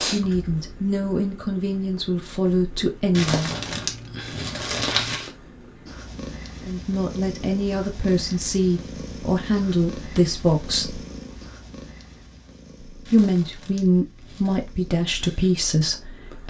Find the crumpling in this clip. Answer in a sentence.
The crumpling can be heard from 3.1 to 5.3 s and from 13.1 to 14.6 s.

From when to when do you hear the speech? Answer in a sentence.
You can hear the speech from 0.0 to 3.6 s, from 6.6 to 11.0 s and from 12.9 to 16.4 s.